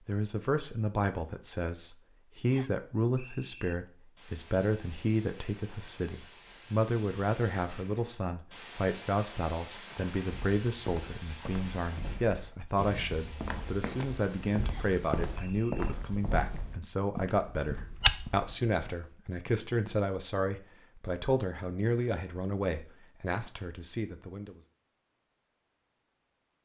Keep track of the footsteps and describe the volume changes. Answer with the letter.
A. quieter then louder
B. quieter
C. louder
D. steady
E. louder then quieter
C.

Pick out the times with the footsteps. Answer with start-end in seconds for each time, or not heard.
10.2-18.8.